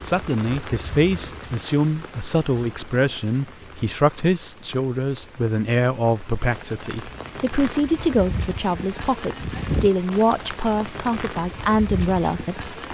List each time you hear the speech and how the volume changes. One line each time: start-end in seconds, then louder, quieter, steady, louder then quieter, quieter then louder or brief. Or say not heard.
0.0-12.9 steady.